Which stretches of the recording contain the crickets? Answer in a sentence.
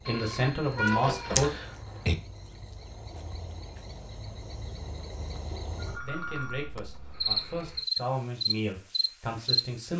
The crickets can be heard from 0.0 to 9.9 s.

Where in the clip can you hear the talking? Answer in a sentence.
The talking can be heard from 0.1 to 1.5 s and from 6.0 to 9.9 s.